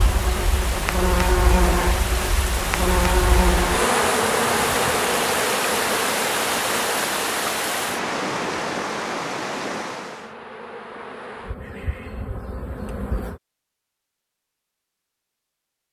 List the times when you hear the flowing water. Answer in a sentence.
You can hear the flowing water from 0.0 to 10.3 s.